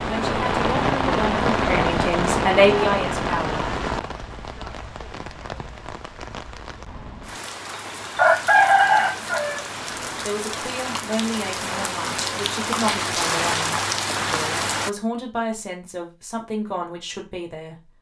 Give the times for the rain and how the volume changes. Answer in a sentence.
The rain can be heard from 0.0 to 14.9 s, getting quieter then louder.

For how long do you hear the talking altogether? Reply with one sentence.
You can hear the talking for 11 seconds altogether.